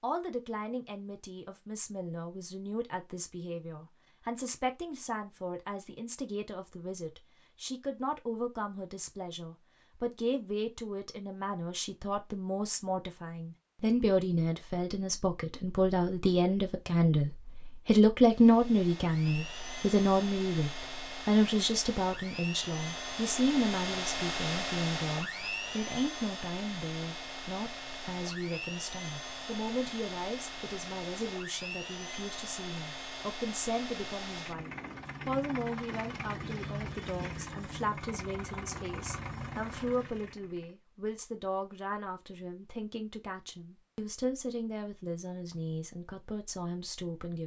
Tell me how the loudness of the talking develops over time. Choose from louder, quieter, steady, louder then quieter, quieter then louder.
louder then quieter.